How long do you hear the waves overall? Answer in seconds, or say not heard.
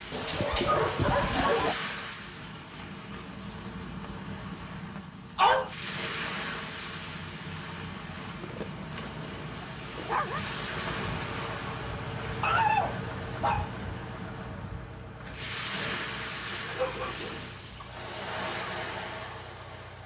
20 s.